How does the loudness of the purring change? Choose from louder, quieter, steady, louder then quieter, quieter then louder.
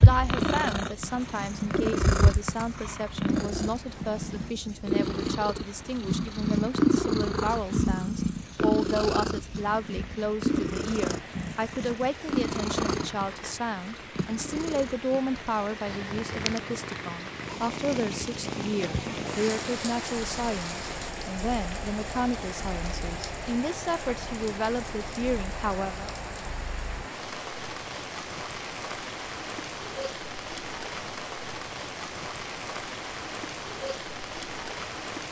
quieter.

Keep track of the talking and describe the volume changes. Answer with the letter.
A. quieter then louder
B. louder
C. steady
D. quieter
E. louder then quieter
C.